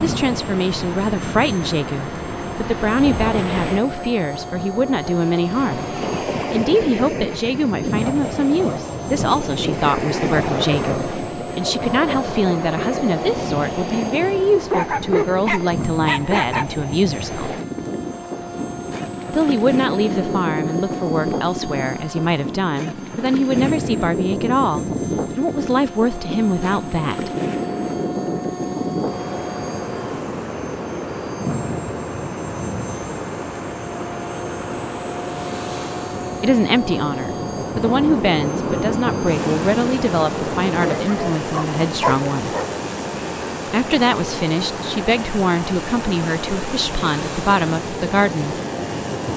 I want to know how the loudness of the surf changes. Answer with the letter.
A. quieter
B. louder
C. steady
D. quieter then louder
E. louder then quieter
C.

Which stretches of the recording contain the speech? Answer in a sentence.
You can hear the speech from 0.0 to 17.6 s, from 19.3 to 27.3 s, from 36.4 to 42.5 s and from 43.6 to 48.5 s.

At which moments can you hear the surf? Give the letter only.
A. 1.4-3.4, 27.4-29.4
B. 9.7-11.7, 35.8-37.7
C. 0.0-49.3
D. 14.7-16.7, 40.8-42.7
C.